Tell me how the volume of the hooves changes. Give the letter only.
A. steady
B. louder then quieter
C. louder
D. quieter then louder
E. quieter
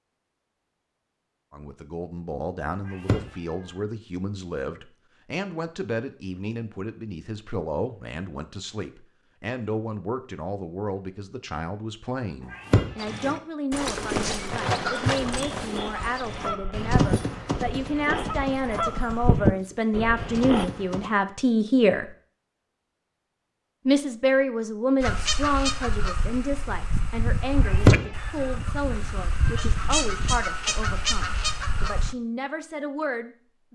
E.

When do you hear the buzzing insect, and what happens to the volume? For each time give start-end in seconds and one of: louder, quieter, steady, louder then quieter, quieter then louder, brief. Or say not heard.
not heard.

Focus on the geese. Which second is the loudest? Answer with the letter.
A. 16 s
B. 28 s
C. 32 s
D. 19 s
D.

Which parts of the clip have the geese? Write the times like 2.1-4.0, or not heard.
14.8-20.7, 25.0-32.1.